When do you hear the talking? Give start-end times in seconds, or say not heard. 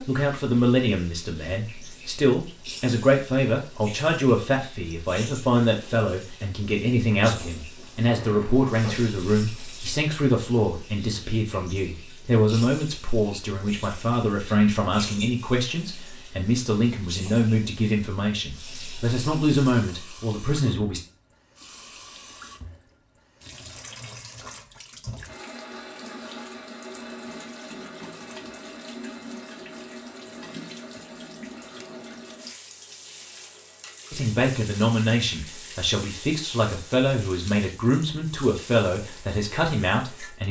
0.1-21.0, 34.1-40.4.